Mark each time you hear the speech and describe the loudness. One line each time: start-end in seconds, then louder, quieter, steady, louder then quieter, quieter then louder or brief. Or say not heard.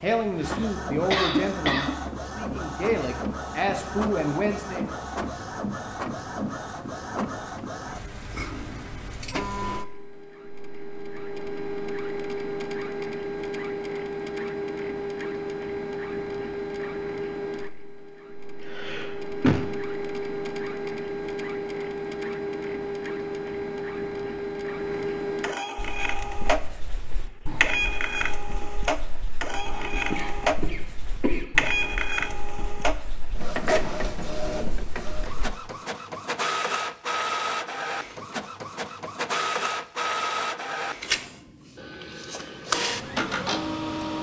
0.0-4.9 quieter then louder.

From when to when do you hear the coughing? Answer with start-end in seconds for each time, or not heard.
0.3-1.9, 18.6-19.6, 29.9-31.4.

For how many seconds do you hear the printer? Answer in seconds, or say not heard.
44 s.